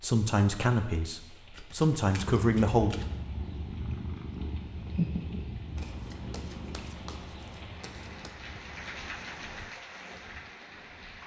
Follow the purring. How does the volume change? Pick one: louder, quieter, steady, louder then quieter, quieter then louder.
louder then quieter.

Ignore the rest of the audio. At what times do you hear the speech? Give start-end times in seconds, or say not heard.
0.0-3.0.